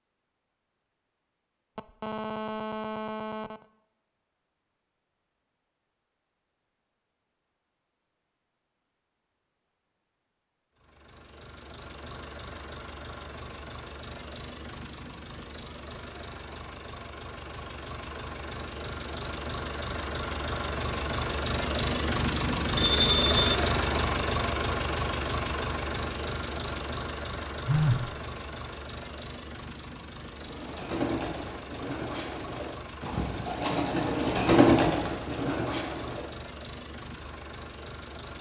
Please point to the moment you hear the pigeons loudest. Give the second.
35 s.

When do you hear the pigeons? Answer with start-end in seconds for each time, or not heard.
30.4-36.3.